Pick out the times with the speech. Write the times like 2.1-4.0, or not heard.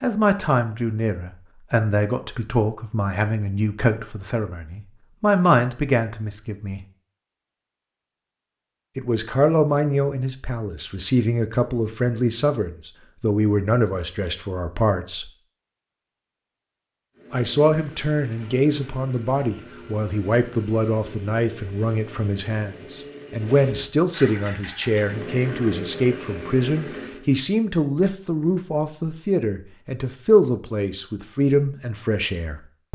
0.0-6.8, 8.9-15.3, 17.3-32.9.